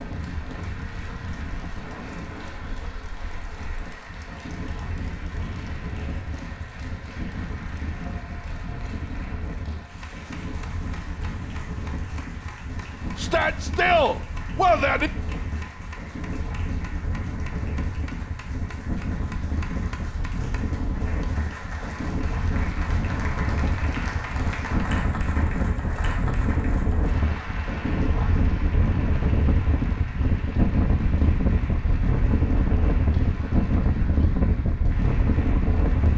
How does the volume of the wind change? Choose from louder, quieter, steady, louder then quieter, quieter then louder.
louder.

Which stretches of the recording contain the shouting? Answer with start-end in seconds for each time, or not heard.
13.2-15.1.